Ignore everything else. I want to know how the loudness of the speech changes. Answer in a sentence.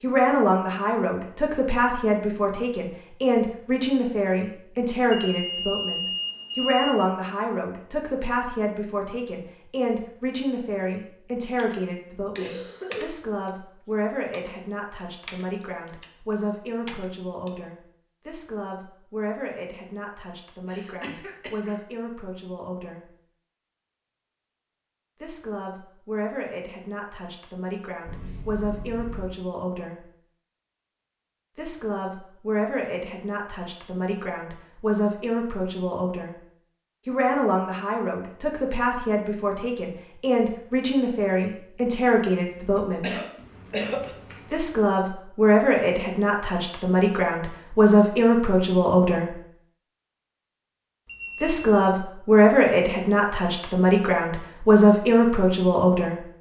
The loudness of the speech goes down, then up.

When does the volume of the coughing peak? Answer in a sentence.
The volume of the coughing peaks at 44 seconds.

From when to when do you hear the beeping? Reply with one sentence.
The beeping can be heard from 5.1 to 7.0 s, from 28.1 to 29.3 s and from 51.0 to 51.9 s.